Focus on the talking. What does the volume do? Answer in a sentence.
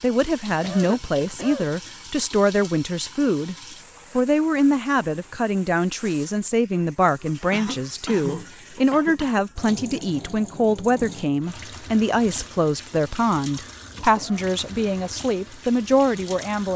The volume of the talking stays about the same.